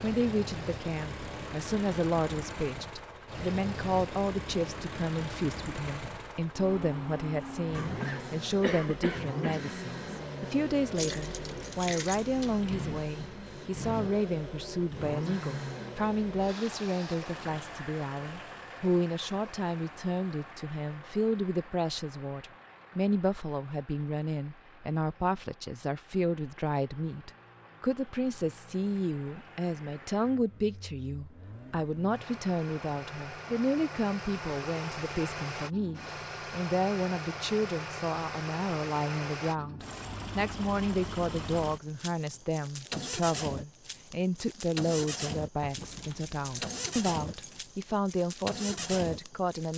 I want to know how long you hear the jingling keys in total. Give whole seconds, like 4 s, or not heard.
4 s.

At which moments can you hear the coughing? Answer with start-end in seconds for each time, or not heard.
7.7-9.7.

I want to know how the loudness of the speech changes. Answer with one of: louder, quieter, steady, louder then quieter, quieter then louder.
steady.